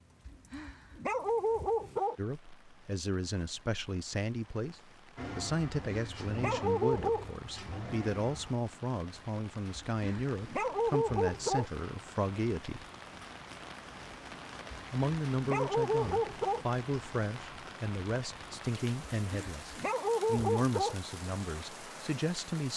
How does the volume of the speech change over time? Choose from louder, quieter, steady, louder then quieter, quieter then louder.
steady.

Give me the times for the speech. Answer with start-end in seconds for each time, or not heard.
2.1-12.8, 14.9-22.7.